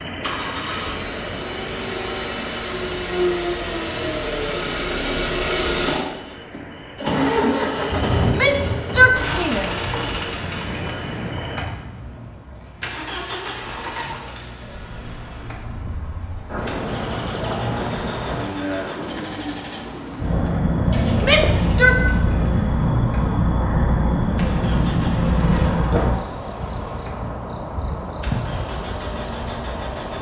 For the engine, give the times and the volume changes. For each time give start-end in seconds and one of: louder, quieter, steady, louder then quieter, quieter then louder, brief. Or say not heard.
0.0-30.1 quieter.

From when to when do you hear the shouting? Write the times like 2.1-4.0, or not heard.
8.2-9.7, 21.2-22.0.